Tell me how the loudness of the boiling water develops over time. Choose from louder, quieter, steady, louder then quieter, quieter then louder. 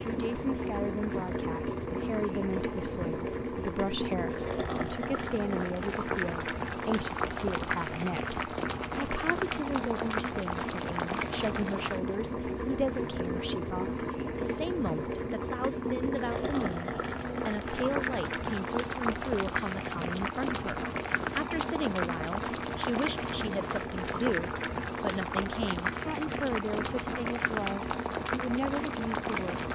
steady.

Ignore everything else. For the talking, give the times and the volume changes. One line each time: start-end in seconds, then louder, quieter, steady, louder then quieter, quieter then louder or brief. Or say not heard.
0.1-29.7 steady.